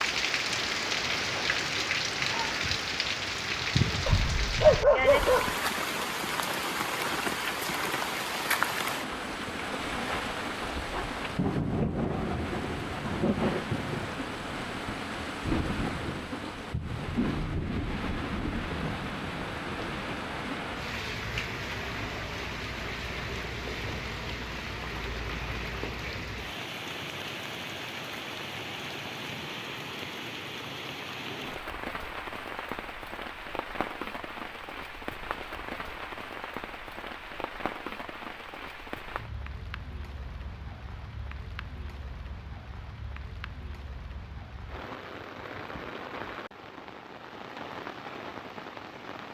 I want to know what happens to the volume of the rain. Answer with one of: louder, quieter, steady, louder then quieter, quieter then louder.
quieter.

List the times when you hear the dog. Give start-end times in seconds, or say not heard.
4.0-5.6.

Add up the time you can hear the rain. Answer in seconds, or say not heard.
49 s.